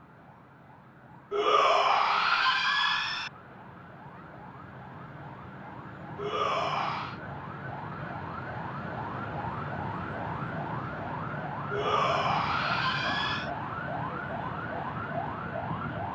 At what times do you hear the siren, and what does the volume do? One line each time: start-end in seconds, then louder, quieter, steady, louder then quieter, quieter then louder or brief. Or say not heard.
0.0-16.0 louder.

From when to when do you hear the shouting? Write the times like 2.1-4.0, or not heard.
1.3-3.3, 6.2-7.2, 11.7-13.5.